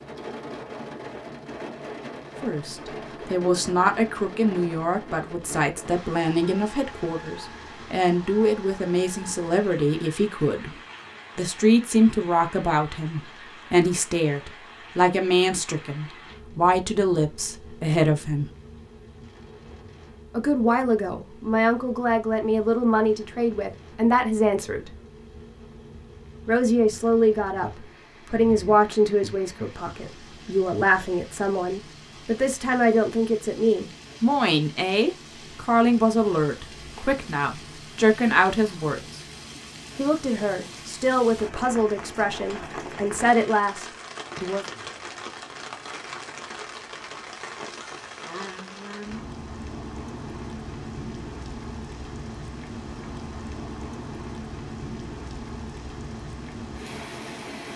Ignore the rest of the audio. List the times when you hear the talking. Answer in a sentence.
The talking can be heard from 2.4 to 10.8 s, from 11.3 to 18.5 s, from 20.3 to 24.9 s, from 26.4 to 39.2 s and from 40.0 to 44.6 s.